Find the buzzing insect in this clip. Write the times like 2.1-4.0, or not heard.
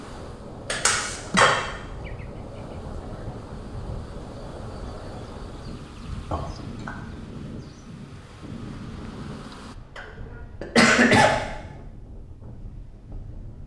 0.0-9.8.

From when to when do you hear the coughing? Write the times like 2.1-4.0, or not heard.
0.7-1.6, 6.3-6.9, 9.9-11.3.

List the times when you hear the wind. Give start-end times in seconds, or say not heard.
0.0-13.6.